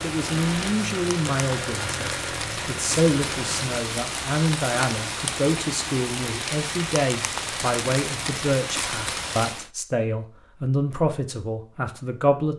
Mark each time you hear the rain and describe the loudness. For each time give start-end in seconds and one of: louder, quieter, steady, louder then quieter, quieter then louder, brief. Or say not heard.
0.0-9.7 steady.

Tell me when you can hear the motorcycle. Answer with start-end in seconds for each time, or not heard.
0.0-3.8.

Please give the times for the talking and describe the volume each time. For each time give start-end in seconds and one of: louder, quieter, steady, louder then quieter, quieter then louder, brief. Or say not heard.
0.0-12.5 steady.